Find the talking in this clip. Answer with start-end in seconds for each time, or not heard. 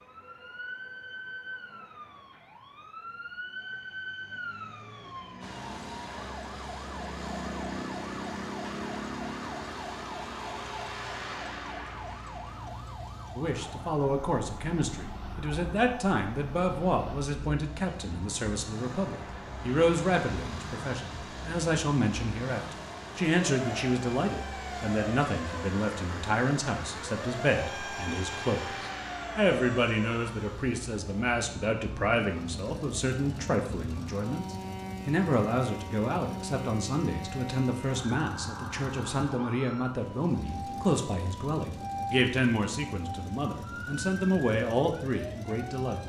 13.3-46.0.